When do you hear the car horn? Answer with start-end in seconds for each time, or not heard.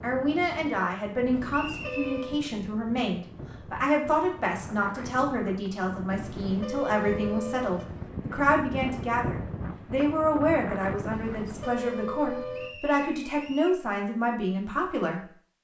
1.3-2.5, 6.1-8.1, 11.1-12.7.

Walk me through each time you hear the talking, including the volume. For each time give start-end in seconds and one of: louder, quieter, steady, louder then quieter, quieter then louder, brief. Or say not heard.
0.0-15.2 steady.